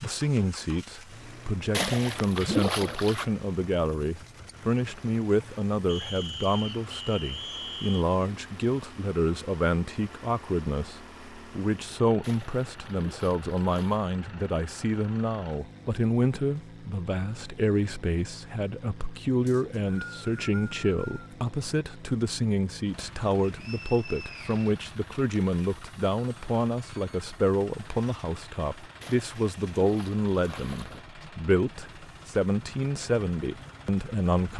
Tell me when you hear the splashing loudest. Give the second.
3 s.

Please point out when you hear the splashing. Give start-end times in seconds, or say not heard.
1.7-3.2, 12.2-14.1, 29.0-31.0.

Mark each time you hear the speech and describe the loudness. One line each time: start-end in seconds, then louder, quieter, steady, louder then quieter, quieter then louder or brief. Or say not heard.
0.0-34.5 steady.